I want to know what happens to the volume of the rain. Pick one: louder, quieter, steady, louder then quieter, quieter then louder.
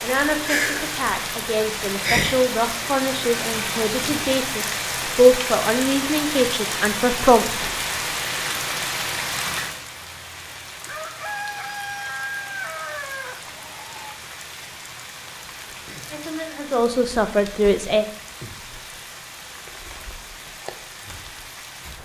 quieter.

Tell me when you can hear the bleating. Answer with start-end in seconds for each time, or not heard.
not heard.